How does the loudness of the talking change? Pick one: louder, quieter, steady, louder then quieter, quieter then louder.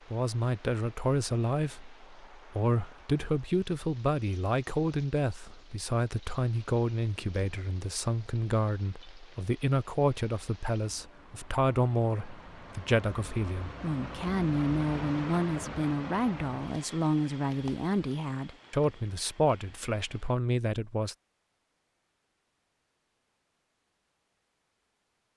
steady.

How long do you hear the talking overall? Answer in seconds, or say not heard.
21 s.